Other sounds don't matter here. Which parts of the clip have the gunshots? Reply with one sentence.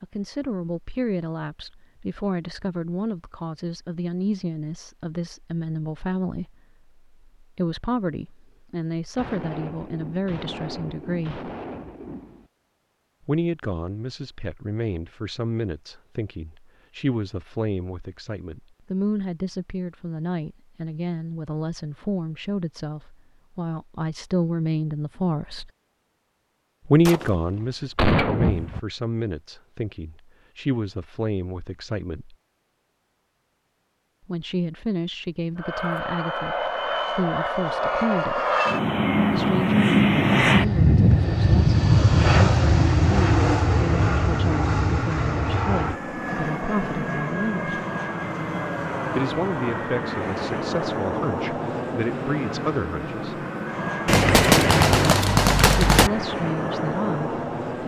You can hear the gunshots from 9.2 to 12.4 s, from 27.1 to 28.8 s and from 54.0 to 56.1 s.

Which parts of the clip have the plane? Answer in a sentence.
You can hear the plane from 35.5 to 57.8 s.